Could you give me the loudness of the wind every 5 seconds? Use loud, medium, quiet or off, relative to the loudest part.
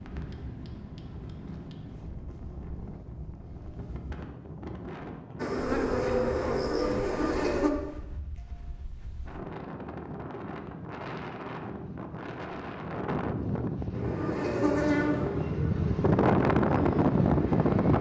quiet, quiet, medium, loud.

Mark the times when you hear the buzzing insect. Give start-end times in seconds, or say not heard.
5.4-7.7, 13.9-17.9.